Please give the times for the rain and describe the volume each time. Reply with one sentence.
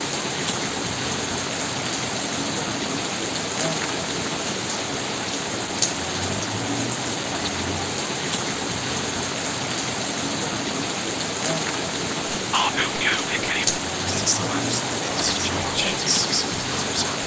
You can hear the rain from 0.0 to 17.2 s, at a steady volume.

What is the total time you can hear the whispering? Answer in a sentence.
The whispering can be heard for 5 seconds in total.